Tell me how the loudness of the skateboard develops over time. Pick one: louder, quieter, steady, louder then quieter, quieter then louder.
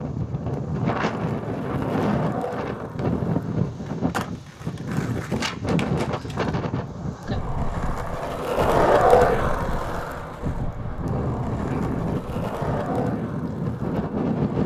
louder then quieter.